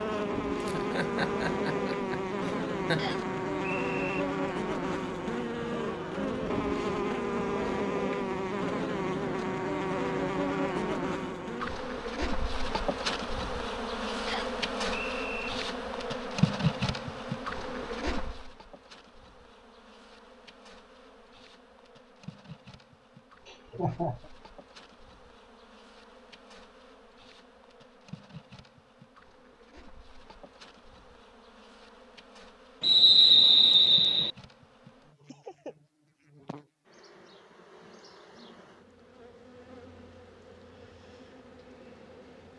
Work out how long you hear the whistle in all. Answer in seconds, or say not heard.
4 s.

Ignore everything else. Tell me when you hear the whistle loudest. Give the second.
33 s.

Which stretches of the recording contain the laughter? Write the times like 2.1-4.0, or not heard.
0.6-3.1, 23.4-24.3, 35.2-35.8.